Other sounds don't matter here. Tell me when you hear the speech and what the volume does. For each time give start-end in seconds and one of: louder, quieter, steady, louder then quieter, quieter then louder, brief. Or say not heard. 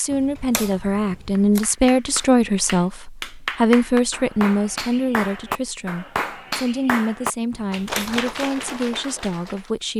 0.0-9.9 quieter.